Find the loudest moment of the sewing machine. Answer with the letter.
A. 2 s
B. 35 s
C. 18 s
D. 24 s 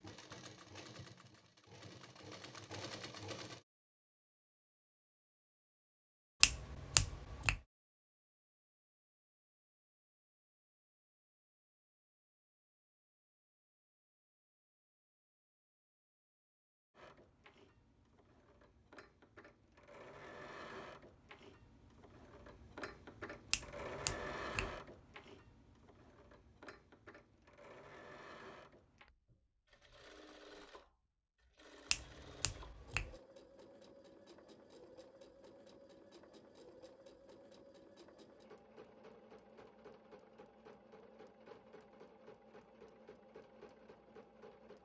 D.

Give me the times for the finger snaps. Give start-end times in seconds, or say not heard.
6.4-7.6, 23.5-24.8, 31.9-33.1.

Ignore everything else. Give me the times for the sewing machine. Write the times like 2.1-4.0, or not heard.
0.0-3.6, 16.9-44.8.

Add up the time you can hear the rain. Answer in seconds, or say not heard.
not heard.